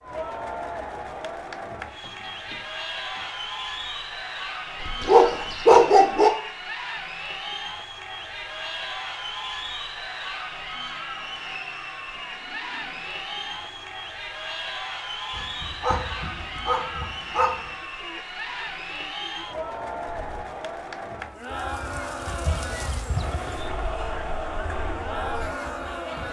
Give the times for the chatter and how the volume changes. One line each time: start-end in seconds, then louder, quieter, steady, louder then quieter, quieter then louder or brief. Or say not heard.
0.0-26.2 steady.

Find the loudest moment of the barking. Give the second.
6 s.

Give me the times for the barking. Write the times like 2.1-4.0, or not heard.
4.8-6.3, 15.3-17.7.